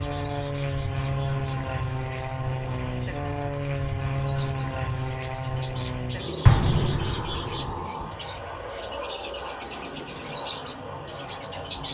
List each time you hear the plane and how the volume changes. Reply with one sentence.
The plane can be heard from 0.0 to 11.9 s, getting quieter.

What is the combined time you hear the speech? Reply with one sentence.
You can't hear the speech here.